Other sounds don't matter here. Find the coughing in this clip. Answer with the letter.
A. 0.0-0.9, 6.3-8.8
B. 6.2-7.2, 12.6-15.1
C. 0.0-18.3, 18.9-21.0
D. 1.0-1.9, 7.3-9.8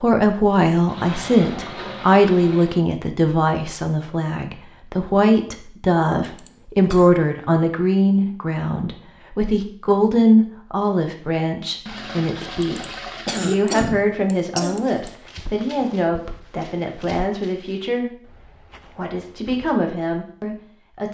B.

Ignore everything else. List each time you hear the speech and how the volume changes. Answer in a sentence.
The speech can be heard from 0.0 to 18.3 s, getting quieter; and briefly from 18.9 to 21.0 s.